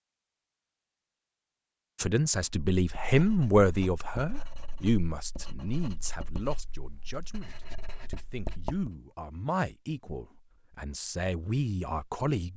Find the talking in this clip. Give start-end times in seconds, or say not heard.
2.0-12.5.